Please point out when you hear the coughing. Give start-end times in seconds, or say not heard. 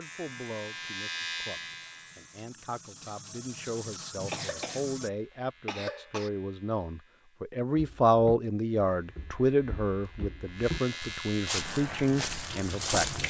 4.3-6.3.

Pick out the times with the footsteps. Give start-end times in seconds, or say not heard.
7.8-13.2.